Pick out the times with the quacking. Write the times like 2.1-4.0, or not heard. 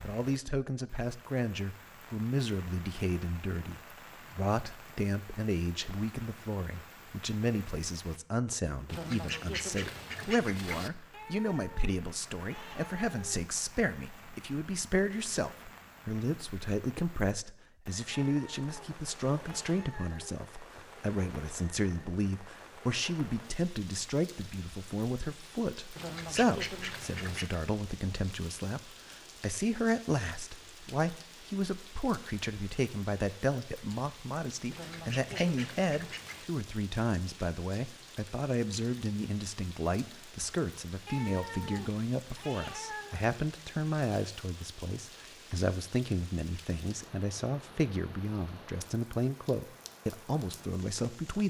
8.8-10.9, 25.9-27.6, 34.7-36.5.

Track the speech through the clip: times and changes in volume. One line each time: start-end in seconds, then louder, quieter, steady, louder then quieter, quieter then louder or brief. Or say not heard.
0.0-51.4 steady.